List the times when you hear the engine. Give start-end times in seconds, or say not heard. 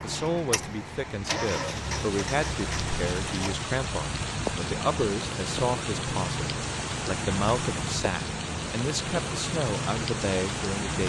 0.0-3.6.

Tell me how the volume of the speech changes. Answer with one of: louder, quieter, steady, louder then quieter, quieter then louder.
steady.